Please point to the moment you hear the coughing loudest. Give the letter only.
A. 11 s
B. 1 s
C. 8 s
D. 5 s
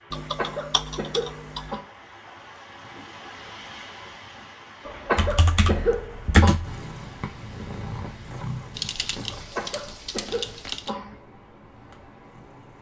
D.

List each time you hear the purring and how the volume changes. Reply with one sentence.
You can hear the purring from 6.6 to 12.7 s, getting quieter.